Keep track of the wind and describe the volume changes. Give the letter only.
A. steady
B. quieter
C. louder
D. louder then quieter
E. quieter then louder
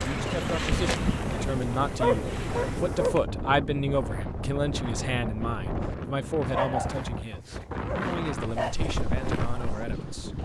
A.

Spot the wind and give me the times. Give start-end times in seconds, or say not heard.
0.0-10.4.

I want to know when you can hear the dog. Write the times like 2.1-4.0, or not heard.
0.7-3.2, 6.5-8.8.